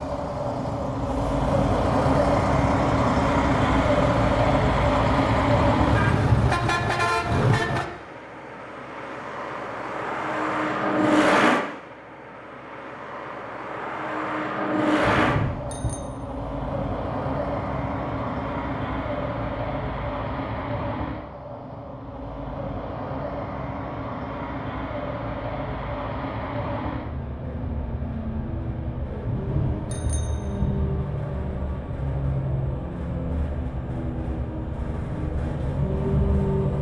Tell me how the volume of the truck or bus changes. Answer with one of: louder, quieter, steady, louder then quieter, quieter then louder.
quieter.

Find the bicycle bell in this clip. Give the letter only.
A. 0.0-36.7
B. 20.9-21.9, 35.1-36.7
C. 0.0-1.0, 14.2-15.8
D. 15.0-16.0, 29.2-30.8
D.